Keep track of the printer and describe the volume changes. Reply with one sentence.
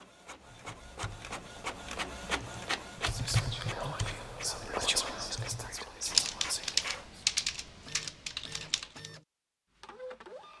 The volume of the printer goes down.